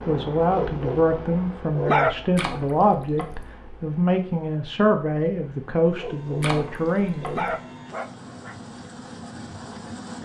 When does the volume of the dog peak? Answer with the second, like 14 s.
2 s.